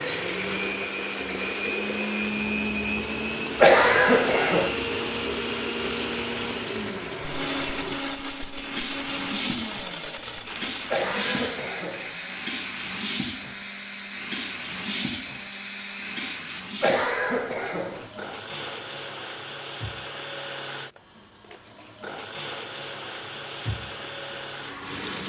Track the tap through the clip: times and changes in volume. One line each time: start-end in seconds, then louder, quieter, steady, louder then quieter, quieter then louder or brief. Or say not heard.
0.0-25.2 quieter.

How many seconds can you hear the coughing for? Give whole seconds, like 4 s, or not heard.
4 s.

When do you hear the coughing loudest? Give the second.
4 s.